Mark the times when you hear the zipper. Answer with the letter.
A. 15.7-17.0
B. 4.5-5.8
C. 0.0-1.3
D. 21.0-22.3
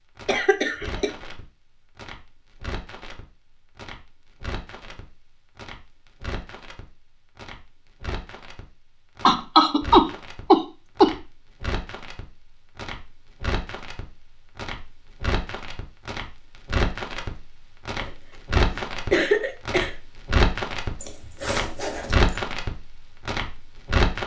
D.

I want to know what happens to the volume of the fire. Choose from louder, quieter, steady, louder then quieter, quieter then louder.
louder.